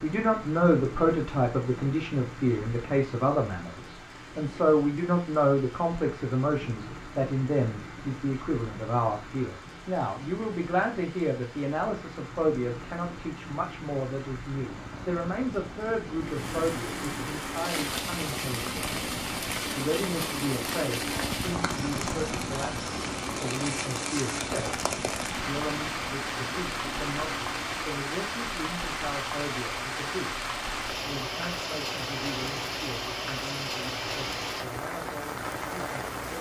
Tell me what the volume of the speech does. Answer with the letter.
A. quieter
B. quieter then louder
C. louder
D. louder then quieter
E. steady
A.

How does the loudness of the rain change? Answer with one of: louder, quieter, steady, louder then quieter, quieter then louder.
louder.